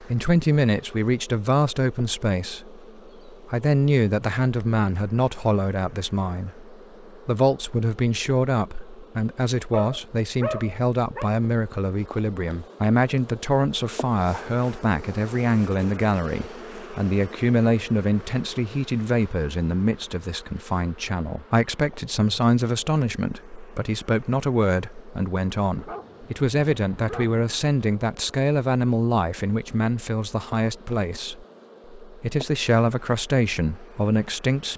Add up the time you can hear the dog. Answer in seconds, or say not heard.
3 s.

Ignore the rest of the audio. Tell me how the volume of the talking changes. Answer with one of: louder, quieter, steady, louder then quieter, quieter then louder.
steady.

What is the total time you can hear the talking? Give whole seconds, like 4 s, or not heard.
35 s.